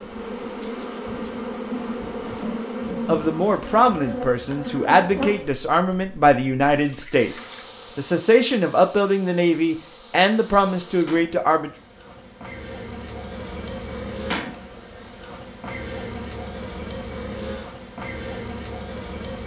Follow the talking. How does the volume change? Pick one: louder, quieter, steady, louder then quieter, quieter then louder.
steady.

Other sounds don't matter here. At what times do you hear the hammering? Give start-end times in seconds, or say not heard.
not heard.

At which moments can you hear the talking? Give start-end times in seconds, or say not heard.
3.0-11.7.